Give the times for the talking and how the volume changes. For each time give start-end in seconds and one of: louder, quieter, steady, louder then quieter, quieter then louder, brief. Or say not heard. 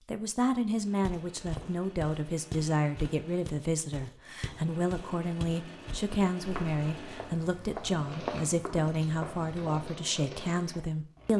0.1-11.3 steady.